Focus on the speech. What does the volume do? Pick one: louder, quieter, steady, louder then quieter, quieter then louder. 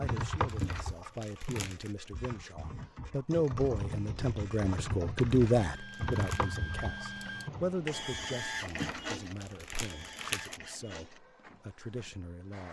louder then quieter.